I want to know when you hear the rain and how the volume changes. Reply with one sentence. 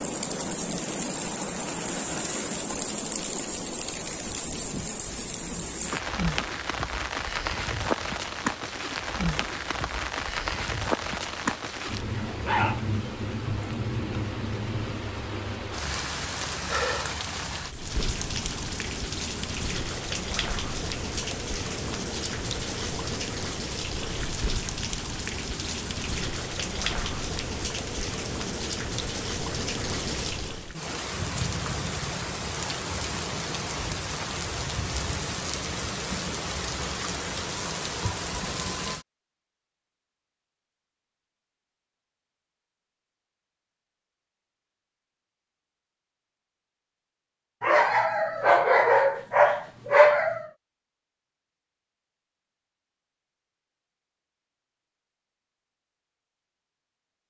You can hear the rain from 0.0 to 39.0 s, at a steady volume.